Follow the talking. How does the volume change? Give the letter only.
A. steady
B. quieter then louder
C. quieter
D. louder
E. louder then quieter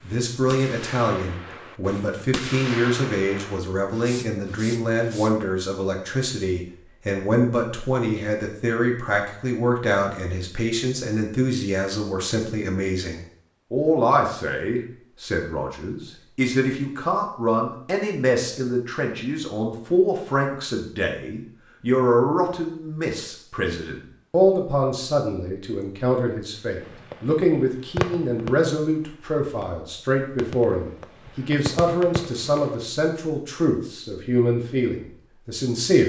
A.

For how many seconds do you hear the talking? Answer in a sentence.
The talking can be heard for 36 seconds in total.